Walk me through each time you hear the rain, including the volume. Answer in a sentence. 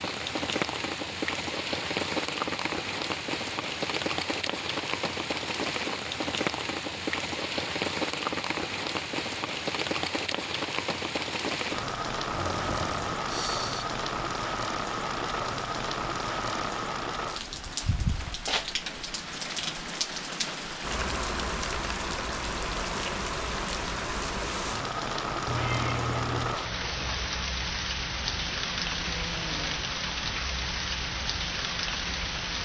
The rain can be heard from 0.0 to 32.6 s, at a steady volume.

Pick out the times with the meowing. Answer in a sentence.
You can hear the meowing from 25.4 to 26.6 s.